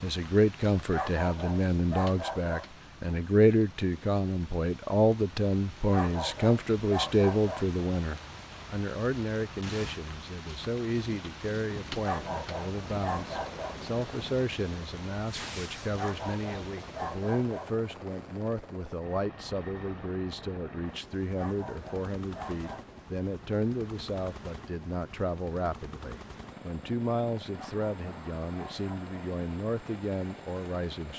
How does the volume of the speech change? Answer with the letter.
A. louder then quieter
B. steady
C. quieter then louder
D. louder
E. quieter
E.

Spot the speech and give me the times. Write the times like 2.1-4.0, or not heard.
0.0-31.1.